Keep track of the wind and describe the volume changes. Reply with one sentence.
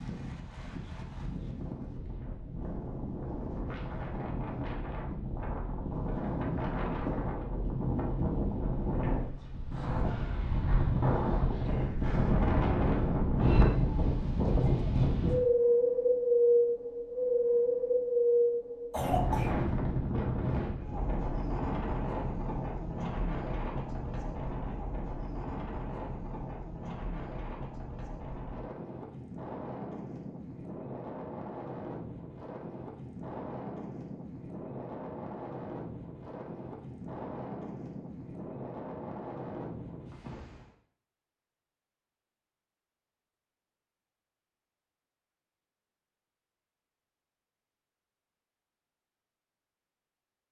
The loudness of the wind goes up, then down.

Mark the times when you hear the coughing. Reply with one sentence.
The coughing can be heard from 18.9 to 19.6 s.